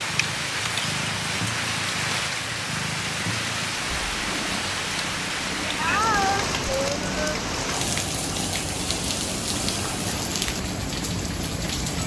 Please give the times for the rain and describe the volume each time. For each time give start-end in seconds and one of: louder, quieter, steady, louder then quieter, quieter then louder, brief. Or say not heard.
0.0-12.0 steady.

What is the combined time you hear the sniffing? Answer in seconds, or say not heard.
2 s.